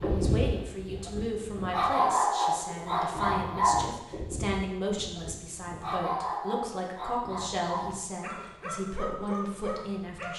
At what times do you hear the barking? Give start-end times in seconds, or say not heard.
0.0-10.3.